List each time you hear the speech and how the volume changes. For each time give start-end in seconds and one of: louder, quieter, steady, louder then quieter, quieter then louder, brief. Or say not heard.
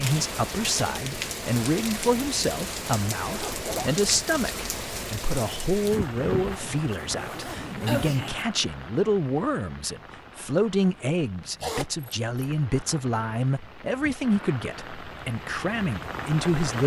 0.0-16.8 steady.